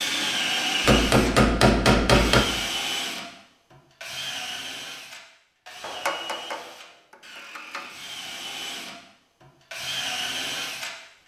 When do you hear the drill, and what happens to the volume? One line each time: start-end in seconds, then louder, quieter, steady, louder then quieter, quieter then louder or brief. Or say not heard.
0.0-10.9 quieter then louder.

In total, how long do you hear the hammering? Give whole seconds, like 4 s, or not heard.
4 s.